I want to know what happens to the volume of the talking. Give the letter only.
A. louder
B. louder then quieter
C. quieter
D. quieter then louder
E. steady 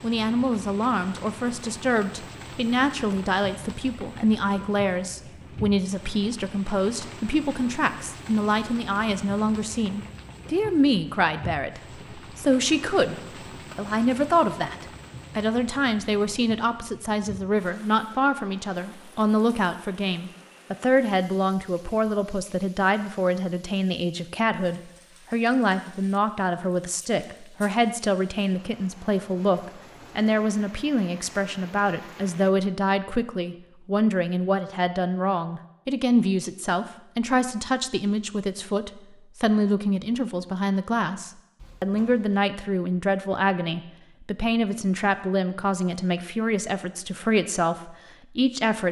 E.